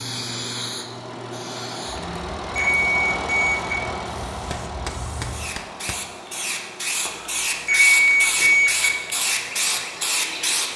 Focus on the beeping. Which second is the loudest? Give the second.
8 s.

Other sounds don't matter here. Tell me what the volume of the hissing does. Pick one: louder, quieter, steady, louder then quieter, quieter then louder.
quieter then louder.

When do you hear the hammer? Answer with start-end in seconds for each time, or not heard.
4.5-6.1.